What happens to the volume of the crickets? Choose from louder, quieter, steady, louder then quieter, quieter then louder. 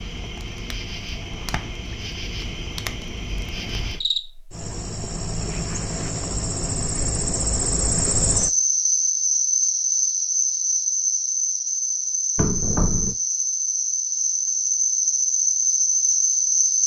louder.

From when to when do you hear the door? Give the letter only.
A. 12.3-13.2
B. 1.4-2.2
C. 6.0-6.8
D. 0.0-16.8
A.